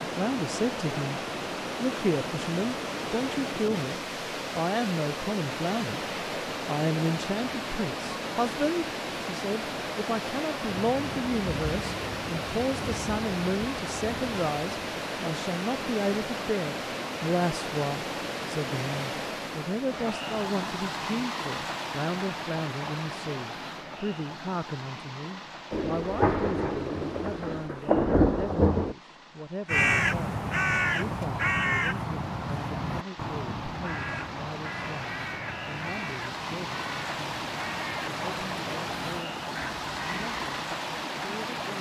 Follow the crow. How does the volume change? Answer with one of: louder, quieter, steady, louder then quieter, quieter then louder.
quieter.